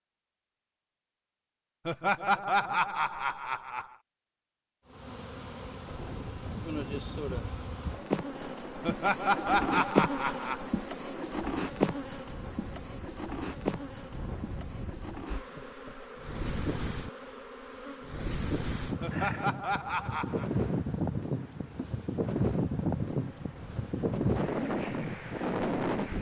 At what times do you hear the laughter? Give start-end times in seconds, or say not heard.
1.9-3.9, 8.8-10.6, 19.0-20.5.